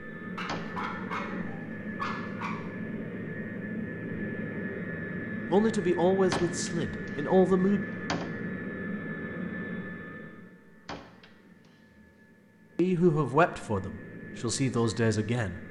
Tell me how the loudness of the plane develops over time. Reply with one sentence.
The volume of the plane goes down.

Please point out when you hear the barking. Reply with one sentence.
The barking can be heard from 0.3 to 2.5 s.